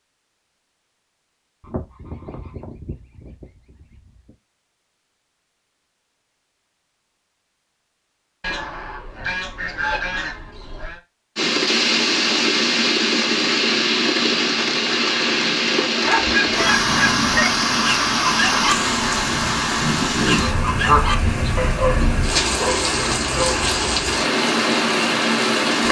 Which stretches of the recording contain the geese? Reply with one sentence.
The geese can be heard from 1.6 to 4.3 s, from 8.4 to 11.0 s, from 16.2 to 17.6 s and from 20.4 to 22.2 s.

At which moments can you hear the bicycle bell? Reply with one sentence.
You can't hear the bicycle bell here.